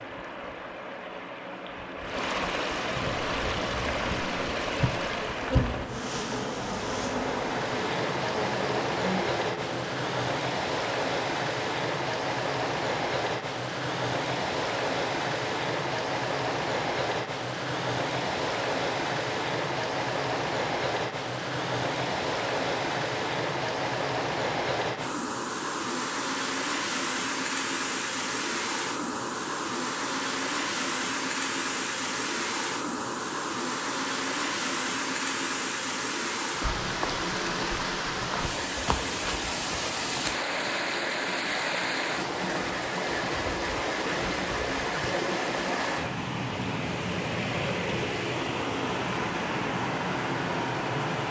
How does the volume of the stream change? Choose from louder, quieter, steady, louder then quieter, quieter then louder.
steady.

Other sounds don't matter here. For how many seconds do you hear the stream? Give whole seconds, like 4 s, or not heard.
51 s.